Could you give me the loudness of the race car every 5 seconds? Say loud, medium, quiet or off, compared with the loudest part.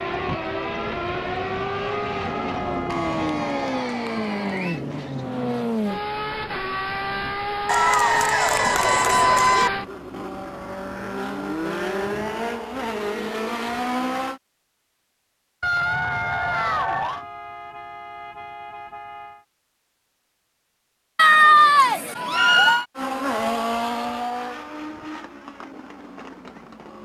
loud, loud, loud, off, loud, quiet.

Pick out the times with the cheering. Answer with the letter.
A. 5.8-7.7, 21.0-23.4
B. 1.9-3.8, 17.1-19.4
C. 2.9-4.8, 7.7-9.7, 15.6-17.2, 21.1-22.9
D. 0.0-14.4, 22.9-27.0
C.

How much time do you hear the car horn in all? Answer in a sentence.
The car horn can be heard for 4 seconds in total.